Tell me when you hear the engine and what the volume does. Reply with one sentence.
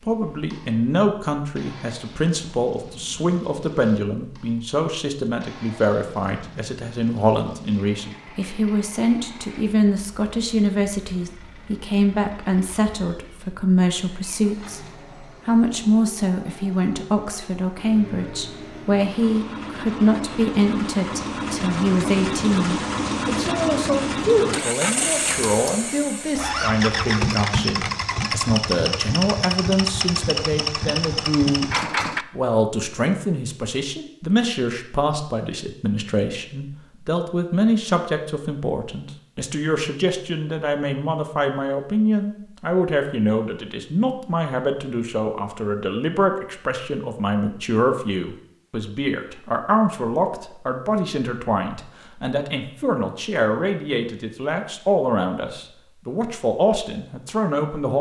The engine can be heard from 0.0 to 32.2 s, getting louder.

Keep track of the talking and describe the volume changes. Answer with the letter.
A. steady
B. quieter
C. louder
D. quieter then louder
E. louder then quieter
A.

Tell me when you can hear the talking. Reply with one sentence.
You can hear the talking from 0.1 to 14.8 s, from 15.4 to 31.7 s and from 32.4 to 57.9 s.